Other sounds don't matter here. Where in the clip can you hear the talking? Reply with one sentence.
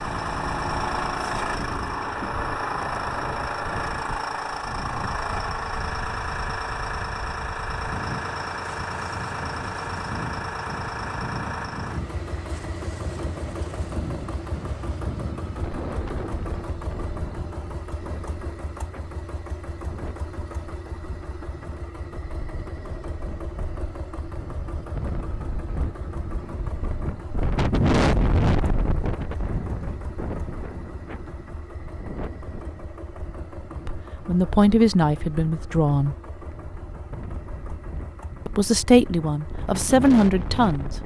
The talking can be heard from 33.9 to 36.1 s and from 38.5 to 40.9 s.